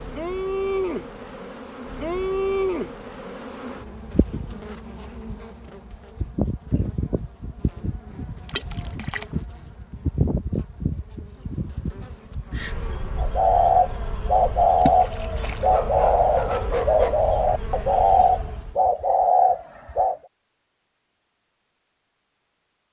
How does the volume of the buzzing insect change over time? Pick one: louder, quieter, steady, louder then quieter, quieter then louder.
quieter.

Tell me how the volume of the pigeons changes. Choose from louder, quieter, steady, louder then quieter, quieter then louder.
steady.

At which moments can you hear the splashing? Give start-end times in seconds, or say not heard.
8.4-9.2, 14.8-15.7.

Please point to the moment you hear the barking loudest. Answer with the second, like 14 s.
17 s.